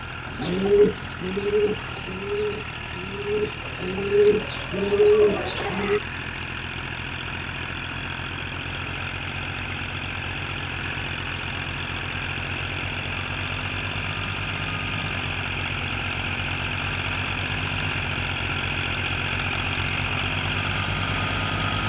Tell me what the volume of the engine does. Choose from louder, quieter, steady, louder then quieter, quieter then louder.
louder.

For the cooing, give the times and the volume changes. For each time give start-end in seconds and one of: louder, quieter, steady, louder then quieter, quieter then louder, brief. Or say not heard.
0.2-6.0 quieter then louder.